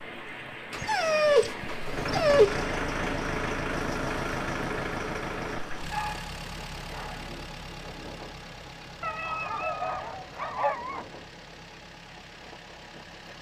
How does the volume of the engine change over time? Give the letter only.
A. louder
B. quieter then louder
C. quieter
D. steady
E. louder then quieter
C.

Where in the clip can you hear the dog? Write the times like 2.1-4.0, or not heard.
0.8-2.8, 5.8-7.3, 9.0-11.1.